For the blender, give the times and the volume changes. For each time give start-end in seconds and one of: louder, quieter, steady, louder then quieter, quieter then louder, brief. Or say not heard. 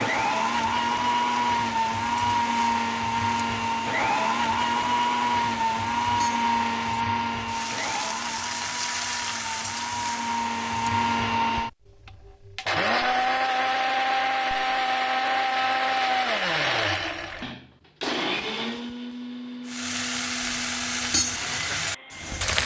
0.0-22.6 quieter.